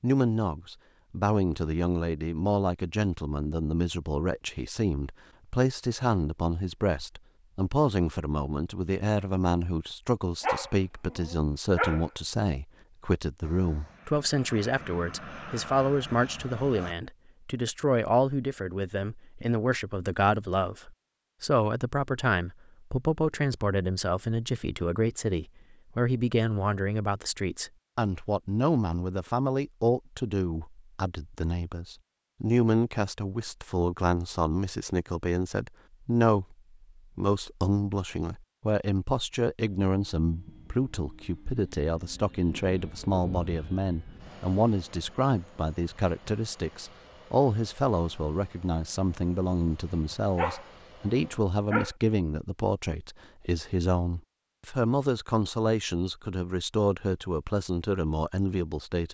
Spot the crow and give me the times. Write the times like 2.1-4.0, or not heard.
not heard.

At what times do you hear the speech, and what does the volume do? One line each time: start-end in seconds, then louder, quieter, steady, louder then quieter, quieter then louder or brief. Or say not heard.
0.0-36.5 steady
37.1-59.0 steady.